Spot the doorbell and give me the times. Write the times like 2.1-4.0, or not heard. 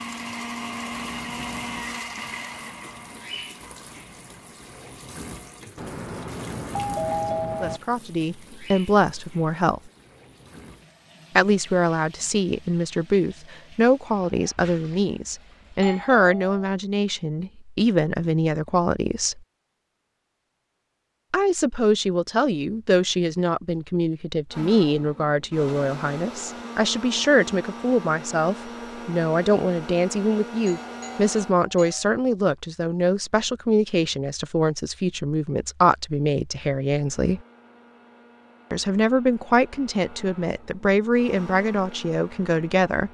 5.8-7.8, 15.8-16.8, 30.6-32.1.